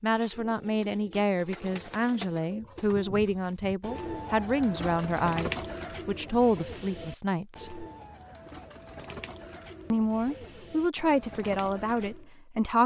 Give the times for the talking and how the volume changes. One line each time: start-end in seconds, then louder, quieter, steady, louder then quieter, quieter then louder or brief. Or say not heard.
0.0-7.8 steady
9.9-12.8 brief.